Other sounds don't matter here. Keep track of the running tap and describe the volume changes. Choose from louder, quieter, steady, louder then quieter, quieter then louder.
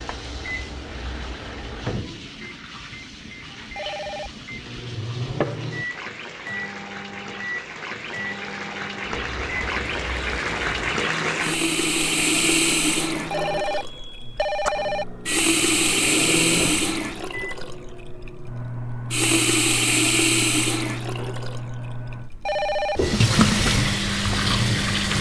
louder.